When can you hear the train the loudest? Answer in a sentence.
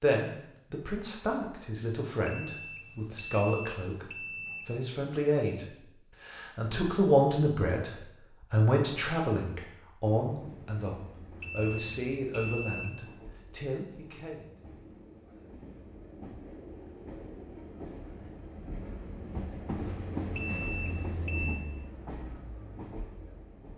The volume of the train peaks at 20 seconds.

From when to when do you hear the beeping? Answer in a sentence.
You can hear the beeping from 2.2 to 4.7 s, from 11.4 to 12.9 s and from 20.4 to 21.6 s.